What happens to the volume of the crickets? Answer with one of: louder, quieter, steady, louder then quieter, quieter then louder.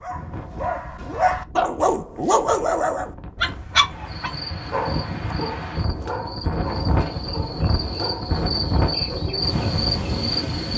louder.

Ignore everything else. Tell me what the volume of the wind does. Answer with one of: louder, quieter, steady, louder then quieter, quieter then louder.
louder.